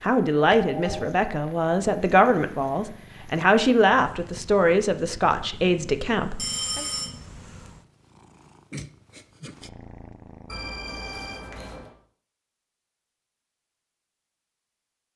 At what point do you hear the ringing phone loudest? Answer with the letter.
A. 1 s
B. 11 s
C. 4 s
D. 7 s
D.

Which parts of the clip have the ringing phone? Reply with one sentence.
You can hear the ringing phone from 0.5 to 1.1 s, from 6.3 to 7.1 s and from 10.4 to 11.9 s.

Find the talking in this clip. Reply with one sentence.
The talking can be heard from 0.0 to 6.8 s.